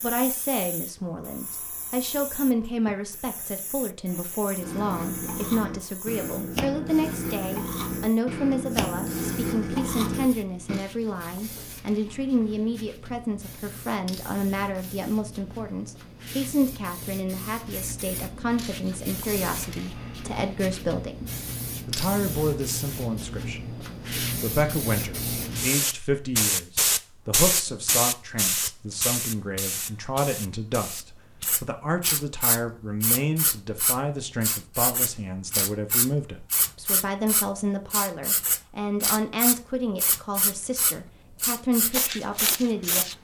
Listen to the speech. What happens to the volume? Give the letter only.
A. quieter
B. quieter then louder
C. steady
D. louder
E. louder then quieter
C.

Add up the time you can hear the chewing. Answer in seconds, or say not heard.
6 s.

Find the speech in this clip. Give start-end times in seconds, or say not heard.
0.0-43.0.